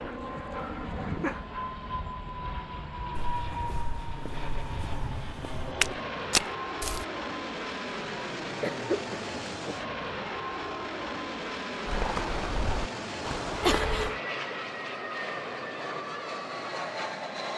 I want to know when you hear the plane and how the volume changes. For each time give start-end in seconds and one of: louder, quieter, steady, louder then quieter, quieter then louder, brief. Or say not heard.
0.0-17.5 steady.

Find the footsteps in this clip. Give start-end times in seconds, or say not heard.
3.1-7.0, 11.8-14.1.